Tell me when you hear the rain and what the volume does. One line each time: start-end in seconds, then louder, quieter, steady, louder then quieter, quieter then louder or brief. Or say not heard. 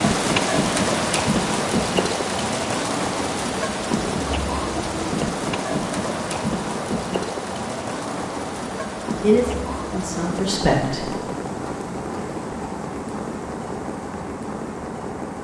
0.0-15.4 quieter.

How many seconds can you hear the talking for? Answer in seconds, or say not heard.
2 s.